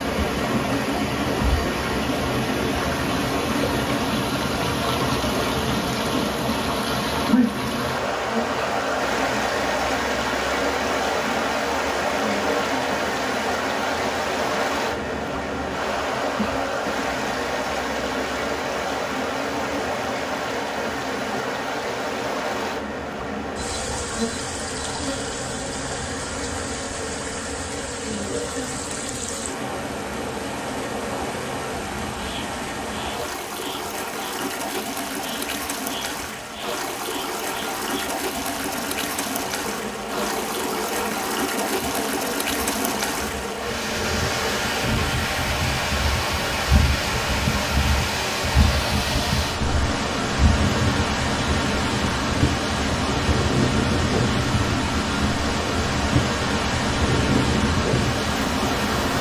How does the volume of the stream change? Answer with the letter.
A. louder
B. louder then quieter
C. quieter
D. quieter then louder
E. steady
D.